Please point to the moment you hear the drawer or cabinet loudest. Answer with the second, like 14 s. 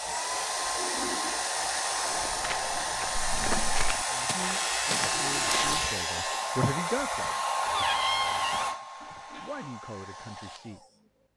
8 s.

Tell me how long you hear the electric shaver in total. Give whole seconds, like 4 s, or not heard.
2 s.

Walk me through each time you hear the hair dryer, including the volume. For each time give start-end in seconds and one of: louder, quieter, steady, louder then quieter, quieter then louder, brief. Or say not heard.
0.0-11.3 quieter.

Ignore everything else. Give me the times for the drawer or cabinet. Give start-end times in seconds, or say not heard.
3.1-3.9, 7.7-8.7.